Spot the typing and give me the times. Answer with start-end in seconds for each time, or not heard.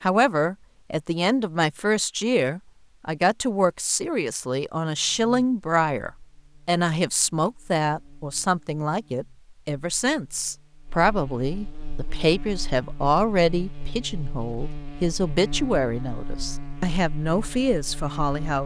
not heard.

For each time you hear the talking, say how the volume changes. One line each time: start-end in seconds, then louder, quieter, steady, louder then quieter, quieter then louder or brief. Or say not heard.
0.0-18.6 steady.